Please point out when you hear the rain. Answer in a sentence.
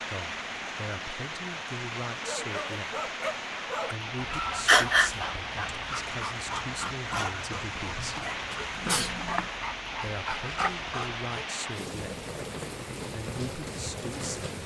The rain can be heard from 0.0 to 14.6 s.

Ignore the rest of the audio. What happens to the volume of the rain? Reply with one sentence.
The volume of the rain stays about the same.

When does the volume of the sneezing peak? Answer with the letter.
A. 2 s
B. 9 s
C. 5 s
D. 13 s
C.